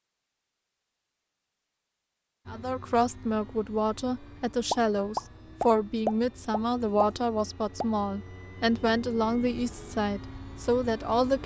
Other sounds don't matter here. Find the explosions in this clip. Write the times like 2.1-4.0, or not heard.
4.7-7.8.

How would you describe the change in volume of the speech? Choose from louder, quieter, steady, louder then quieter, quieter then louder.
steady.